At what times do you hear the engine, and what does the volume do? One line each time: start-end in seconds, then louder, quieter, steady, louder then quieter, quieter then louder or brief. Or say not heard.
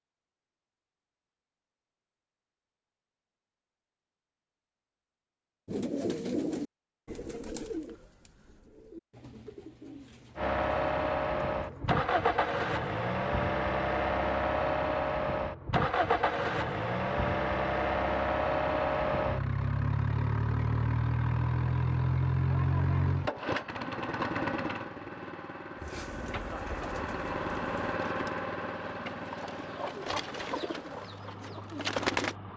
10.3-32.5 quieter.